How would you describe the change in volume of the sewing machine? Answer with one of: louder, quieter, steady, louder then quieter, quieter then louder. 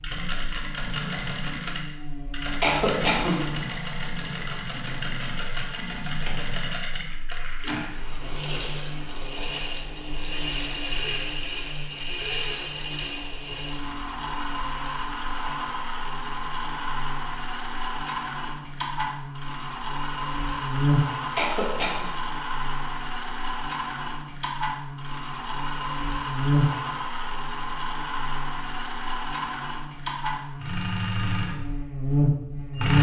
steady.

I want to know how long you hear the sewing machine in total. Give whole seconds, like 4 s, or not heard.
33 s.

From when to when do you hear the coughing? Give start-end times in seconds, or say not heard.
2.6-3.4, 21.4-22.1.